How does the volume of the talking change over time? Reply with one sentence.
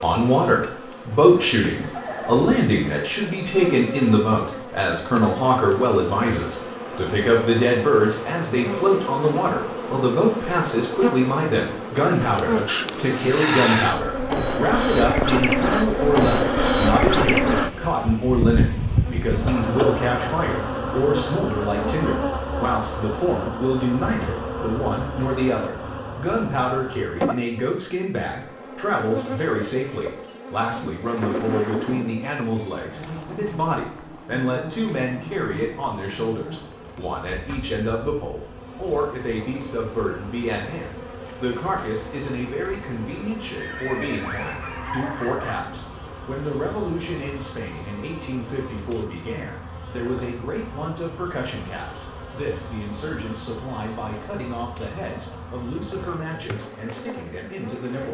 The volume of the talking goes down.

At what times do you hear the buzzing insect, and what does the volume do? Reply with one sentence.
The buzzing insect can be heard from 0.0 to 58.1 s, getting louder then quieter.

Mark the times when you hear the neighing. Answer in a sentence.
The neighing can be heard from 1.2 to 2.5 s, from 31.1 to 32.1 s and from 43.6 to 45.6 s.